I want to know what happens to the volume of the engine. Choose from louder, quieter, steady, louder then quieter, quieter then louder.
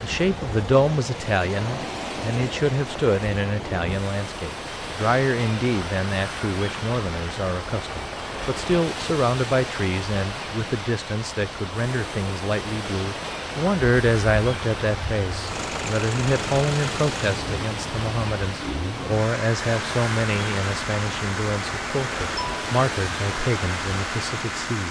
steady.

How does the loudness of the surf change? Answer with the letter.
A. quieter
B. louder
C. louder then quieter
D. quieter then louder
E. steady
E.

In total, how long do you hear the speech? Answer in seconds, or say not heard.
25 s.